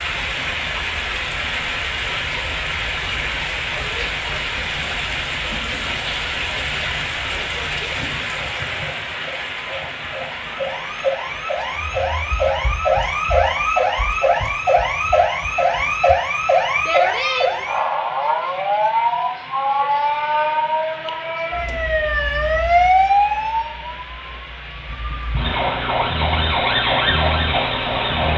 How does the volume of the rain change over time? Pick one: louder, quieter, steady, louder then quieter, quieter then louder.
quieter.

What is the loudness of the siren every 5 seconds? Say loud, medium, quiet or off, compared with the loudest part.
quiet, quiet, loud, loud, loud, loud.